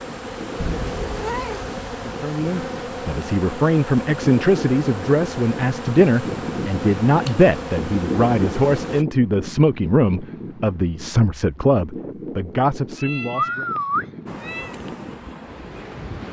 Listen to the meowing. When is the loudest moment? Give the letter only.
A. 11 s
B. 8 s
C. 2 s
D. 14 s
D.